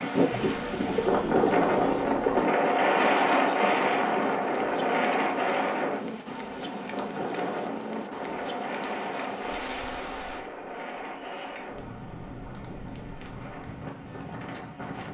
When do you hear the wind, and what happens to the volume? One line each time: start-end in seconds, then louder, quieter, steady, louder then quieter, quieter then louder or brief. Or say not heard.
0.0-15.0 quieter.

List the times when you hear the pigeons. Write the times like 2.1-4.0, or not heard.
0.3-2.5.